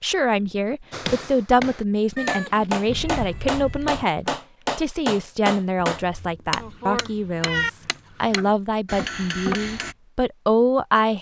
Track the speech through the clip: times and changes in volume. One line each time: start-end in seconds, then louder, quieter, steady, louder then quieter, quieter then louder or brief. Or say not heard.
0.0-11.1 steady.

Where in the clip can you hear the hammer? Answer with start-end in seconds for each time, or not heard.
0.9-9.9.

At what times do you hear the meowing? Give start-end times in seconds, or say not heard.
2.1-4.0, 6.0-7.7.